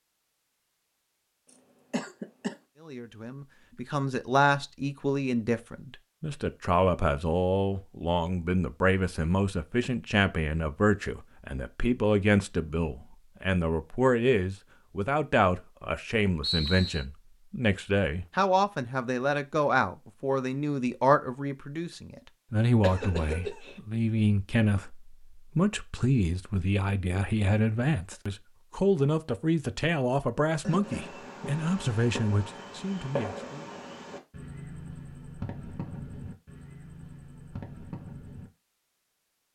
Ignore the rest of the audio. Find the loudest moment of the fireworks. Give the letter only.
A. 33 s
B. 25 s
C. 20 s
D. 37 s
A.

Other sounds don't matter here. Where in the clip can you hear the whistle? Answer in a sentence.
The whistle can be heard from 16.4 to 17.1 s.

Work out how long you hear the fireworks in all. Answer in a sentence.
You can hear the fireworks for 8 seconds altogether.